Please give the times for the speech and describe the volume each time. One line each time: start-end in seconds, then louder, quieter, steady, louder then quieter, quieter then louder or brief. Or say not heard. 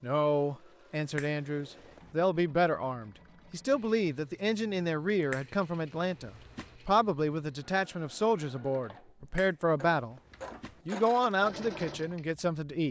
0.0-10.2 steady
10.8-12.8 brief.